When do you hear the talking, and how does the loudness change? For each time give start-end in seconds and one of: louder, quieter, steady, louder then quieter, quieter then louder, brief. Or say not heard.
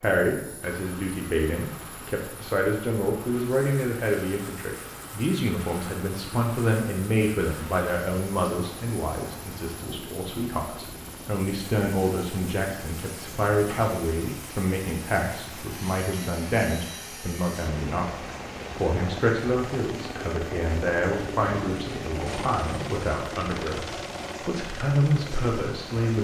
0.0-26.2 steady.